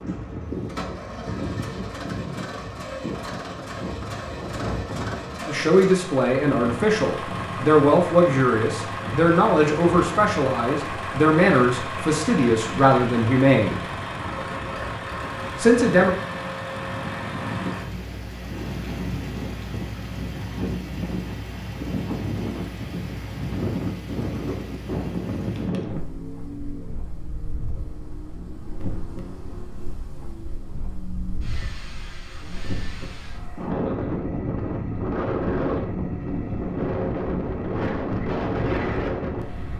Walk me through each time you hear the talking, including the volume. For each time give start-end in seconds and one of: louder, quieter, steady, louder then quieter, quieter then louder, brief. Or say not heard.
5.5-13.8 steady
15.6-16.1 brief.